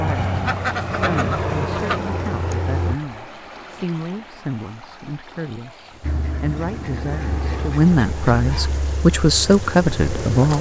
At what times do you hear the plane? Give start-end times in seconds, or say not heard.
0.0-3.0, 6.0-10.5.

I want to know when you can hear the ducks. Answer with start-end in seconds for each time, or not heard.
0.5-2.0, 6.0-8.8.